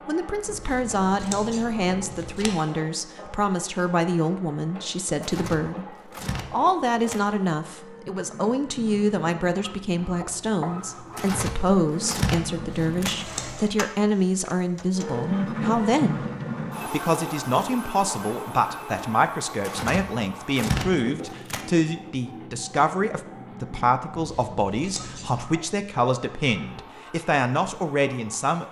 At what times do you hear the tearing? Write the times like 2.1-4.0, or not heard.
5.2-7.2, 11.2-13.2, 19.6-21.6.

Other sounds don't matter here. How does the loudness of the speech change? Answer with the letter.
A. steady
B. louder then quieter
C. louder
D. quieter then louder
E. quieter
A.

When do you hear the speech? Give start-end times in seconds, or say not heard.
0.1-16.2, 16.9-28.6.